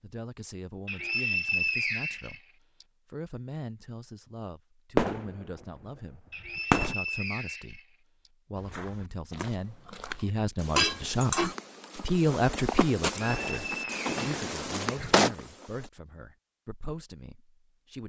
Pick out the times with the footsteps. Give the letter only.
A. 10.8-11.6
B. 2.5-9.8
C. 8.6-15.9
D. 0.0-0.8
C.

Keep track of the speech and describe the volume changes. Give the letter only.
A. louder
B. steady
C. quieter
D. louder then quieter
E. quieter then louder
D.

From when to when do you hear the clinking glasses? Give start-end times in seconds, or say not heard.
10.8-11.6.